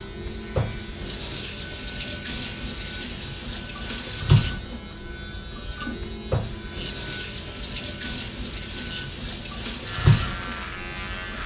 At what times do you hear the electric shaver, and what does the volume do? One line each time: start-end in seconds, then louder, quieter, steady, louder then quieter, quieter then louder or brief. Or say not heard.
0.0-11.4 steady.